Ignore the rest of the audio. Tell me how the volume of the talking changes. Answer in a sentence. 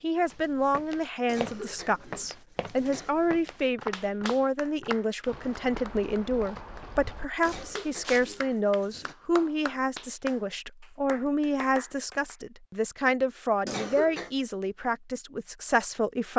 The loudness of the talking stays about the same.